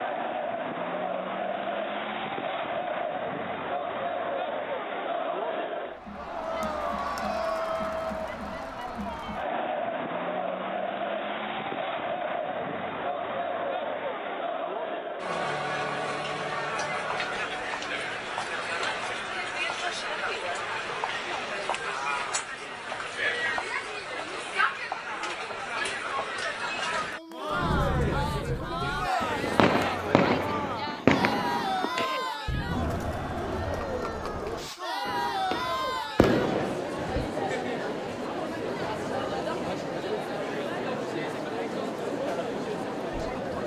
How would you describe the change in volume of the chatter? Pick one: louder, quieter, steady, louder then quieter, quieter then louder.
steady.